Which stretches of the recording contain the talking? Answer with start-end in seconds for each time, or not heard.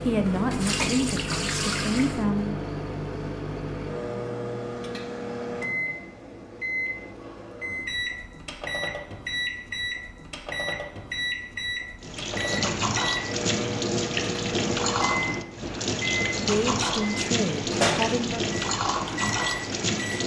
0.0-2.5, 16.4-18.4.